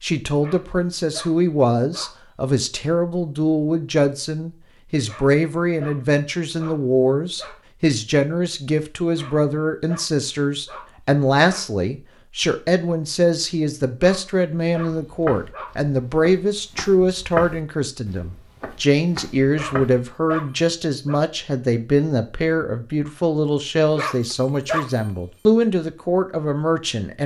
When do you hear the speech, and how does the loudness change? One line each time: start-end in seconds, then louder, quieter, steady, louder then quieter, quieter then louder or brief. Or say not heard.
0.0-27.2 steady.